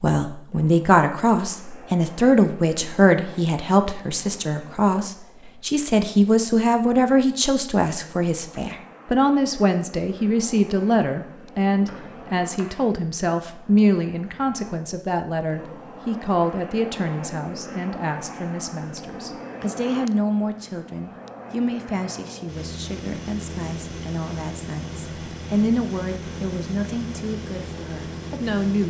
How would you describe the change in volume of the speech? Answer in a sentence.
The loudness of the speech goes down.